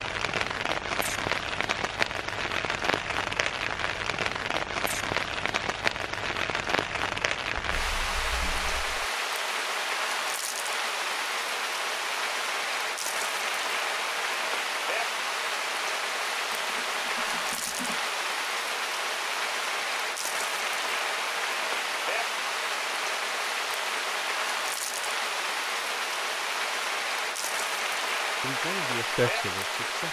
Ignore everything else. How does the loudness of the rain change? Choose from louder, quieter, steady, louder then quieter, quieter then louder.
steady.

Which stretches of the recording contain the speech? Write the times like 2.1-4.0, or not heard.
28.4-30.0.